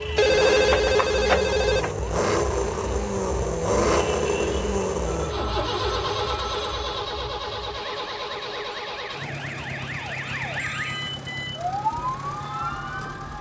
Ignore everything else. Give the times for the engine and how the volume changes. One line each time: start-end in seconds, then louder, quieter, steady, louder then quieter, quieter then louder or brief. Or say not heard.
0.0-13.3 quieter.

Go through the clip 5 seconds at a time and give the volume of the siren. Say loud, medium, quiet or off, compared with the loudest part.
loud, medium, loud.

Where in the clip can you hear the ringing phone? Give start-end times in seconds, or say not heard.
0.1-1.9, 5.0-7.0, 10.6-11.2.